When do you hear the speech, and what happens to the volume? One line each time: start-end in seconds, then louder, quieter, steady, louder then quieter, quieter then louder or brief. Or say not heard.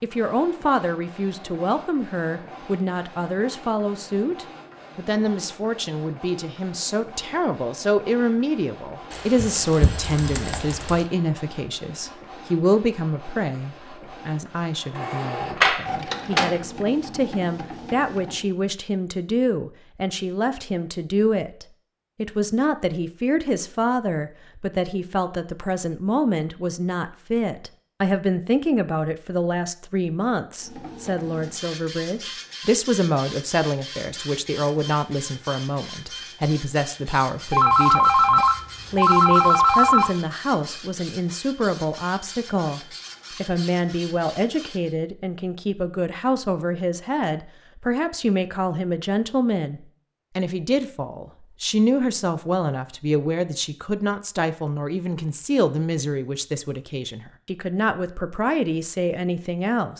0.0-59.9 steady.